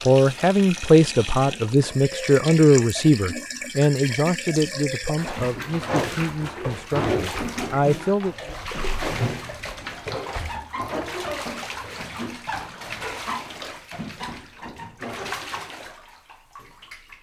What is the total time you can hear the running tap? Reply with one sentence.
You can hear the running tap for 17 seconds altogether.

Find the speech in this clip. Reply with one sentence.
The speech can be heard from 0.1 to 8.3 s.